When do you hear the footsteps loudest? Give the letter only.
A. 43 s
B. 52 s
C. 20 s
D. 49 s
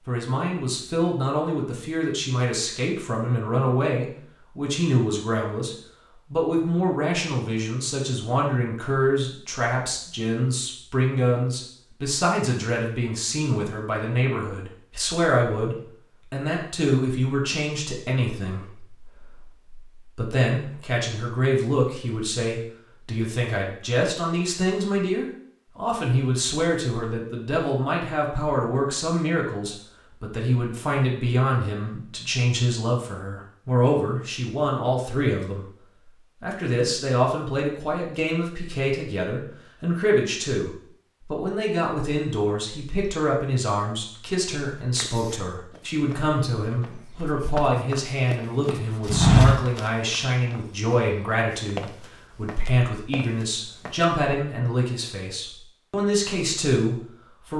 D.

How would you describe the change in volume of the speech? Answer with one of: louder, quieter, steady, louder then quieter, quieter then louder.
steady.